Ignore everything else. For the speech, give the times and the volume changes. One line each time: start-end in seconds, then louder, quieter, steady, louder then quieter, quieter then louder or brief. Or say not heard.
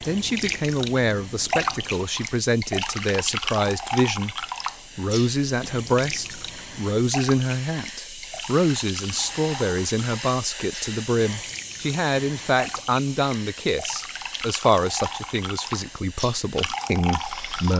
0.1-17.7 steady.